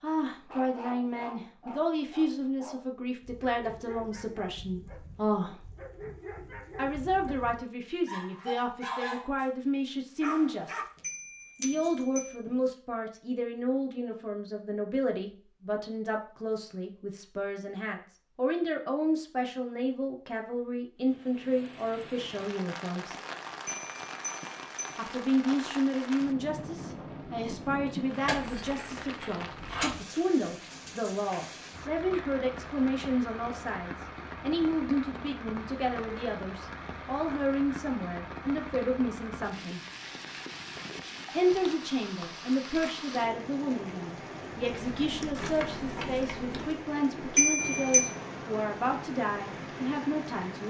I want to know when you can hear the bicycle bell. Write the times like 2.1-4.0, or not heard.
11.0-12.3, 23.6-25.0, 47.4-48.1.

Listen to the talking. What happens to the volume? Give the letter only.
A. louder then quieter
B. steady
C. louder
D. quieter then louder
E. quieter
B.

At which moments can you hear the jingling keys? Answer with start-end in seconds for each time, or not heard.
10.9-12.8, 28.1-29.9, 44.6-46.8.